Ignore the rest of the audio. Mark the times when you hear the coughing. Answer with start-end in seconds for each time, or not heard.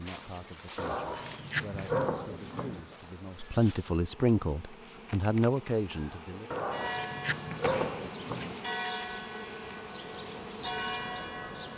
not heard.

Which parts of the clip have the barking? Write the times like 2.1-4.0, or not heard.
0.8-3.0, 6.5-8.7.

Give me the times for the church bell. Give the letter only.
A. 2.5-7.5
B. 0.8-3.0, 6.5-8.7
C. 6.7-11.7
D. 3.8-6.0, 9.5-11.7
C.